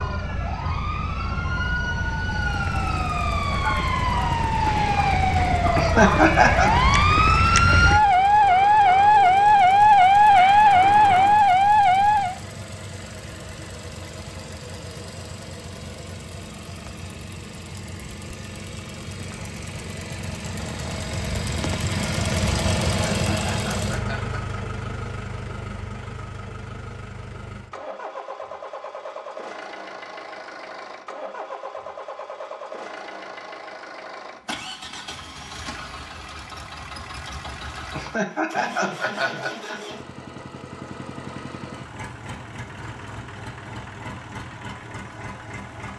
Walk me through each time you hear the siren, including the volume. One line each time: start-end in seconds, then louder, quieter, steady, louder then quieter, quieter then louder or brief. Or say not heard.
0.0-12.3 louder.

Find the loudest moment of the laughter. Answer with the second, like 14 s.
6 s.